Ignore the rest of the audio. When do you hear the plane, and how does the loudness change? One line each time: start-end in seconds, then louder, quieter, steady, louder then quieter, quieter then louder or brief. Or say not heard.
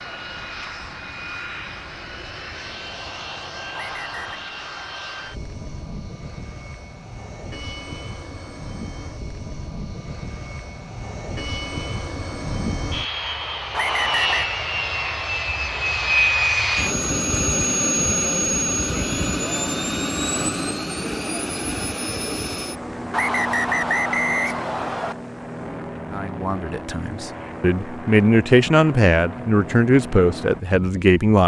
0.0-31.2 louder then quieter.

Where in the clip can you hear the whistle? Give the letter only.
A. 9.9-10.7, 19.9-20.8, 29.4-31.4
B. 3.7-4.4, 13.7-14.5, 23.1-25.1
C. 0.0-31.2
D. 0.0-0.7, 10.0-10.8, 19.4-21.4
B.